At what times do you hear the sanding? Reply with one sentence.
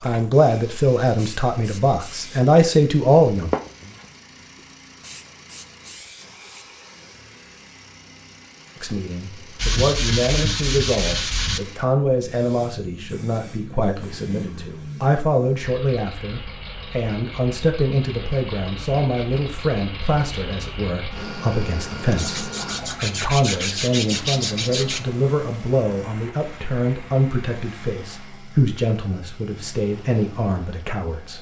You can hear the sanding from 9.6 to 11.6 s and from 22.1 to 25.0 s.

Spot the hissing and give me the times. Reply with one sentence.
The hissing can be heard from 0.0 to 6.7 s.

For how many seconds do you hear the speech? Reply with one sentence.
You can hear the speech for 26 seconds altogether.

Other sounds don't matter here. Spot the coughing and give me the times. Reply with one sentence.
The coughing can't be heard in this clip.